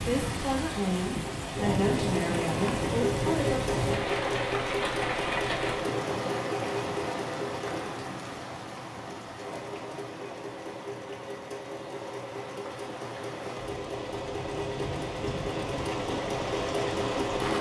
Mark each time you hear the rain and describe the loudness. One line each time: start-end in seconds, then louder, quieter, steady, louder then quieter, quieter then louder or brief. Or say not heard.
0.0-17.5 quieter then louder.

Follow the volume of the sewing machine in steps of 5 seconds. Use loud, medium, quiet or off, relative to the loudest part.
loud, loud, medium, loud.